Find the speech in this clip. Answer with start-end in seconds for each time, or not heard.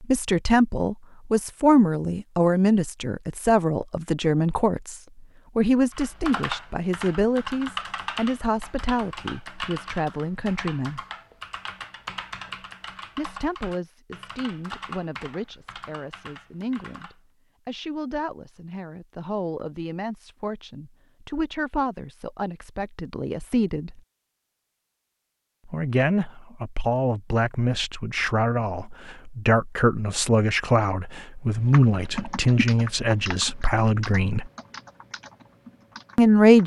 0.0-11.0, 13.2-24.0, 25.6-34.5, 36.1-36.6.